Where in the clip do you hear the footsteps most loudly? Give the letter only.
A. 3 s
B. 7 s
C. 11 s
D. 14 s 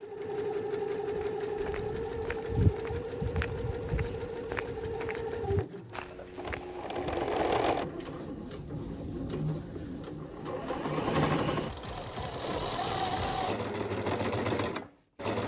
A.